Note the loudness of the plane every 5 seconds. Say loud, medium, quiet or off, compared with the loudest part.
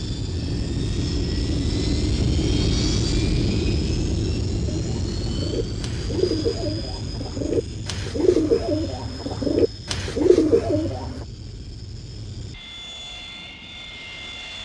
loud, medium, quiet.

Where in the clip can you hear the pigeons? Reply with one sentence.
The pigeons can be heard from 4.7 to 11.2 s.